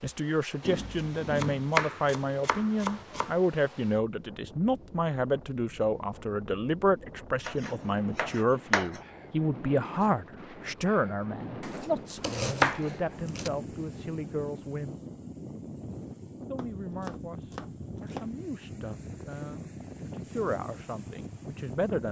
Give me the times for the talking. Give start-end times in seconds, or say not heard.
0.0-15.0, 16.5-22.0.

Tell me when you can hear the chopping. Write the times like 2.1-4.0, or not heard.
0.6-3.4, 7.4-9.0, 11.6-13.5, 16.6-18.4.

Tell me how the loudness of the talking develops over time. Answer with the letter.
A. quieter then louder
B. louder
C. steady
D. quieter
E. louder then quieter
D.